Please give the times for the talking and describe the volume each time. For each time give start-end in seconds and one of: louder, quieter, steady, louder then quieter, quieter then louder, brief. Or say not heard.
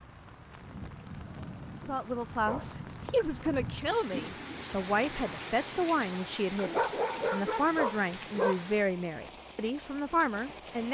1.9-10.8 steady.